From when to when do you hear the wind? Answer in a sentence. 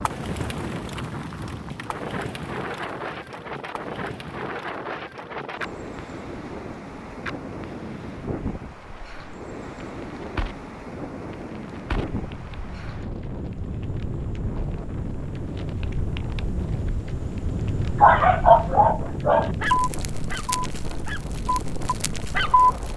You can hear the wind from 0.0 to 22.9 s.